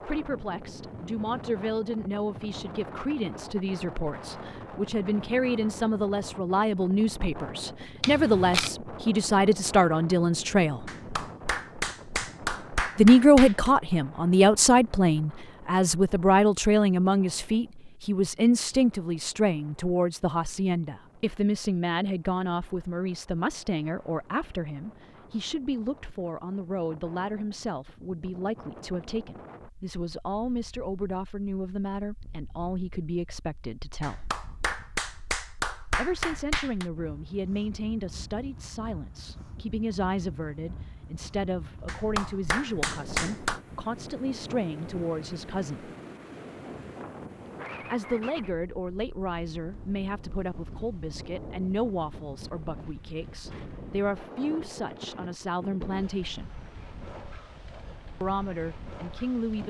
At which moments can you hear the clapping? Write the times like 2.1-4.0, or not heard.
10.8-13.7, 34.0-36.9, 41.9-43.6.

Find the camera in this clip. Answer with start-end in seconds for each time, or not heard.
8.0-8.8.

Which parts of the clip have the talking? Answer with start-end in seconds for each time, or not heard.
0.1-10.9, 12.9-34.3, 36.0-45.9, 47.9-56.5, 58.2-59.6.